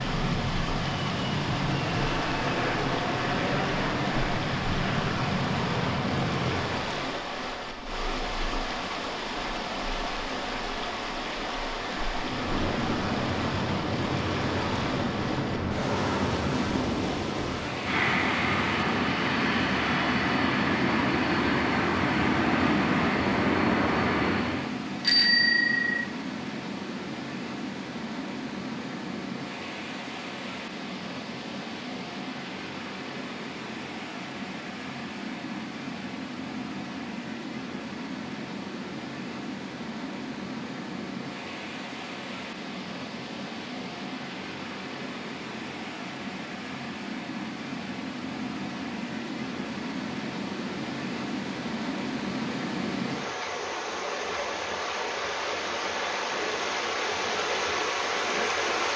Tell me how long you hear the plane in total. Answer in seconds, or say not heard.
20 s.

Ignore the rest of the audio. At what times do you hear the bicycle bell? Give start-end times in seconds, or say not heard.
25.0-26.1.